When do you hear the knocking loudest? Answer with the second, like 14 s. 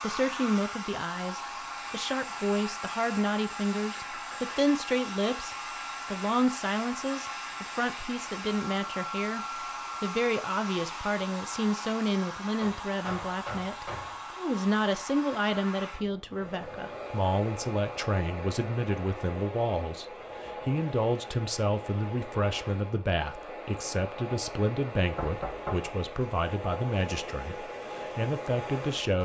26 s.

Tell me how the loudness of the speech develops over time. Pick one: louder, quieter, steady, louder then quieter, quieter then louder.
steady.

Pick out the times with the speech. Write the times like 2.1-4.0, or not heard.
0.0-29.2.